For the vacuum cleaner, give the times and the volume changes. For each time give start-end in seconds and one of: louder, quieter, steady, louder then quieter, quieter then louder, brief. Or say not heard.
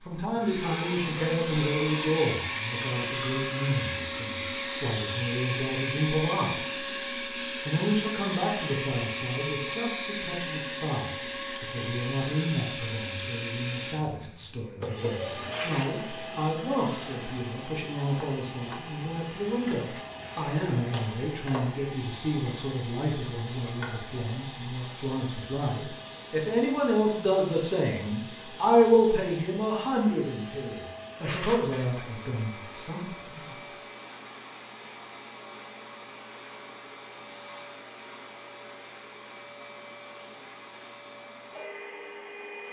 0.3-42.6 quieter.